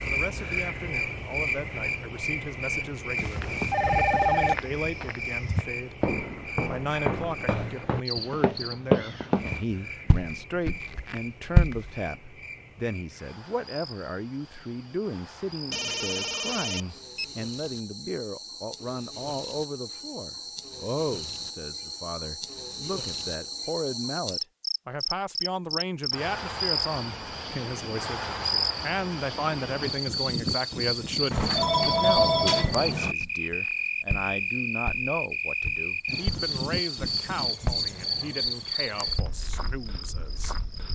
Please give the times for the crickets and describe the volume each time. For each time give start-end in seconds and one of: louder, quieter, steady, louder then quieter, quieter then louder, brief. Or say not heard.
0.0-40.9 quieter then louder.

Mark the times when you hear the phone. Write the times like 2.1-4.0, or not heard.
3.1-4.5, 15.7-17.3, 31.3-33.1.